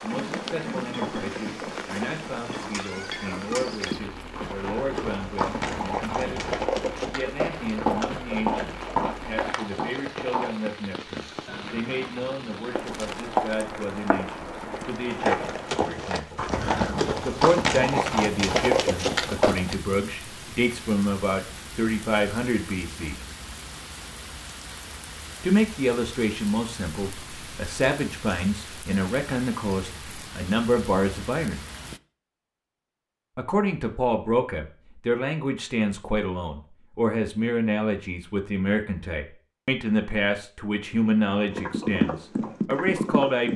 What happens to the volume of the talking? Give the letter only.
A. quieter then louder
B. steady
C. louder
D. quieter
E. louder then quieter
C.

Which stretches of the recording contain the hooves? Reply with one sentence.
The hooves can be heard from 0.1 to 10.6 s, from 12.7 to 19.8 s and from 41.5 to 43.5 s.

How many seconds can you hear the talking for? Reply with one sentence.
The talking can be heard for 39 seconds in total.